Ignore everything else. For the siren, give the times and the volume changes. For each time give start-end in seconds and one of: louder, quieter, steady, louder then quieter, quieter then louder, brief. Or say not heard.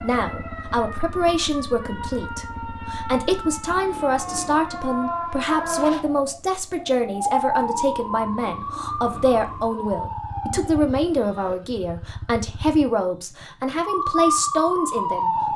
0.0-11.6 louder then quieter
13.8-15.5 brief.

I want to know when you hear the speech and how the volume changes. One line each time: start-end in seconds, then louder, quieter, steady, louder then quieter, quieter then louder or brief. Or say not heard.
0.0-15.5 steady.